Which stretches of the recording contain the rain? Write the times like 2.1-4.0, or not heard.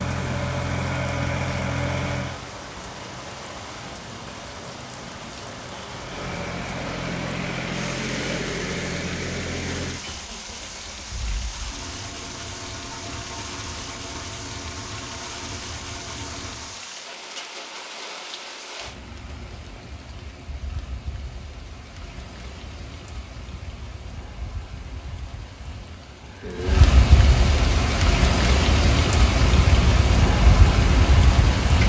0.0-31.8.